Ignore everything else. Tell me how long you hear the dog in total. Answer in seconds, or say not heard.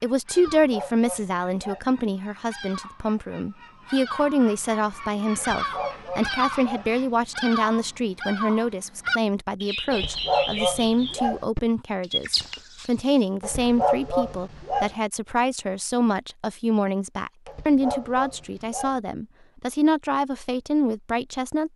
8 s.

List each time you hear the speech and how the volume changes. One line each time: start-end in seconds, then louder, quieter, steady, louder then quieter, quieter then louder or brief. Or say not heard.
0.0-21.7 steady.